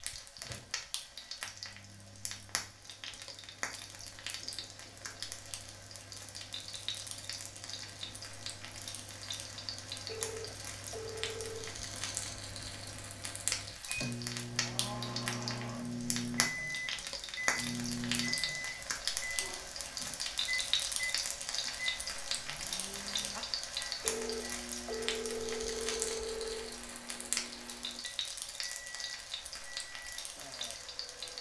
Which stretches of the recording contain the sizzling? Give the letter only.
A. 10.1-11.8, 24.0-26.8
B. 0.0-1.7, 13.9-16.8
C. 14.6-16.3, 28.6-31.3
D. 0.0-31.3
D.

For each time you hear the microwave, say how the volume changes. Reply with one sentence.
You can hear the microwave from 0.4 to 31.3 s, getting louder then quieter.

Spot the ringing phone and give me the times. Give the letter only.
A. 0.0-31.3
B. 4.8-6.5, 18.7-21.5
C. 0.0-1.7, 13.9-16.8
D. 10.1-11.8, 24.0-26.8
D.